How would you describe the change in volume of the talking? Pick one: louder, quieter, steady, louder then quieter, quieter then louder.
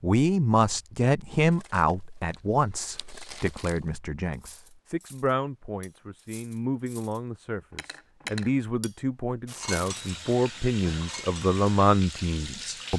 quieter then louder.